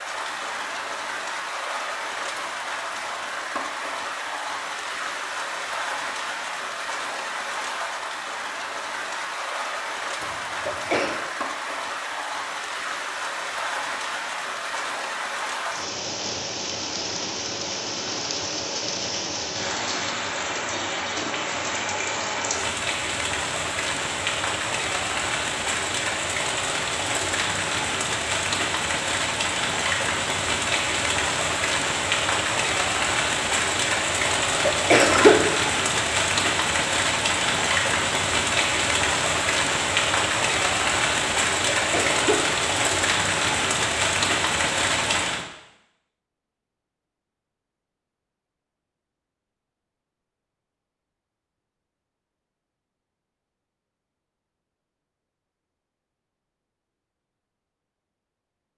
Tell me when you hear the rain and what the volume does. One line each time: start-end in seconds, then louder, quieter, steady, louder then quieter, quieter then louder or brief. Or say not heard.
0.0-45.5 louder.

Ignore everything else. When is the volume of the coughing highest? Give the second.
35 s.